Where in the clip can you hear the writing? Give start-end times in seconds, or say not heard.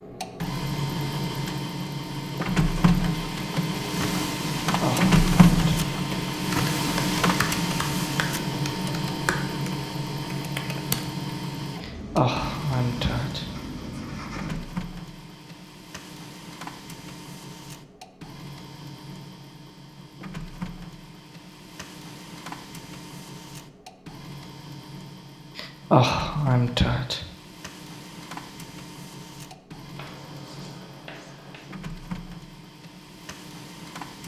11.8-14.6, 29.9-31.7.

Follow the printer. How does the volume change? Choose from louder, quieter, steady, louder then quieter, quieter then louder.
quieter.